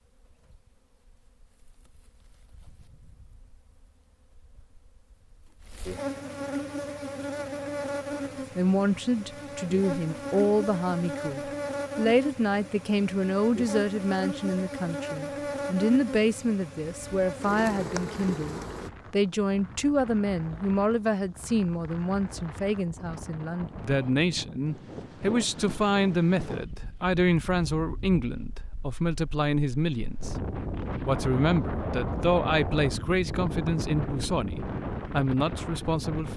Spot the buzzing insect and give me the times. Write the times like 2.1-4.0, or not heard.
0.0-18.9.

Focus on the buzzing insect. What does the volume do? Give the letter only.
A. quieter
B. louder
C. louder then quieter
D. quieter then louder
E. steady
B.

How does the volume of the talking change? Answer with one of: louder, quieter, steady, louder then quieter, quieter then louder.
steady.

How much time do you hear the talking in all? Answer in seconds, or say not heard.
27 s.